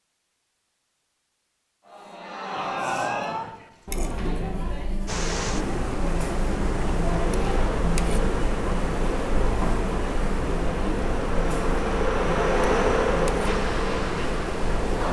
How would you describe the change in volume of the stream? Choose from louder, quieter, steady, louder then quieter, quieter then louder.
steady.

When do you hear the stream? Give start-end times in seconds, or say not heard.
5.0-15.0.